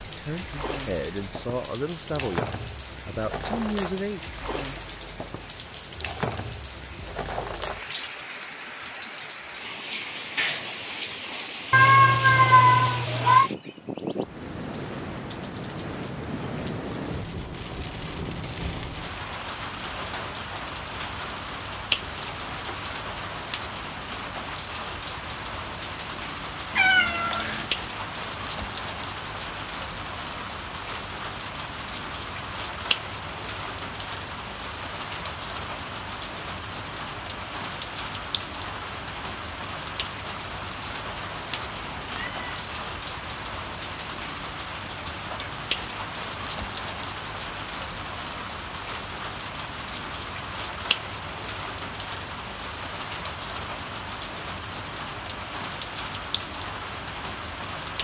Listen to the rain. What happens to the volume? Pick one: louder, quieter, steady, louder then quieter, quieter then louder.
steady.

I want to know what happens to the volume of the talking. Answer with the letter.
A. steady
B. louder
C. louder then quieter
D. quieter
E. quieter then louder
E.